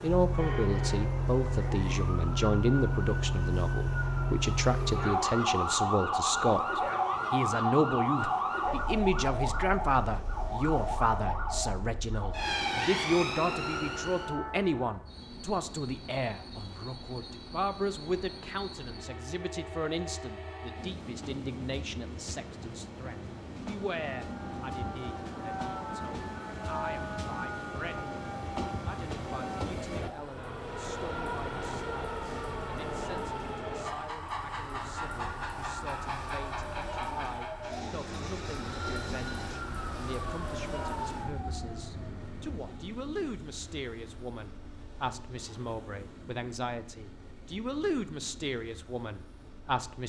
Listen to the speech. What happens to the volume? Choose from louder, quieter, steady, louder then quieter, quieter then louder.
quieter then louder.